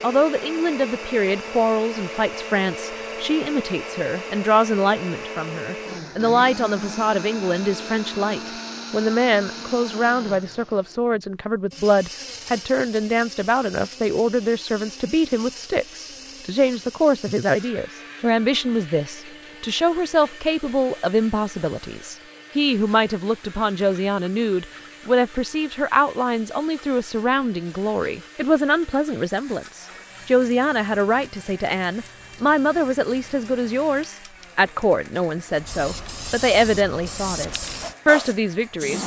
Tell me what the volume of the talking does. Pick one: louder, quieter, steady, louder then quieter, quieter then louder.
steady.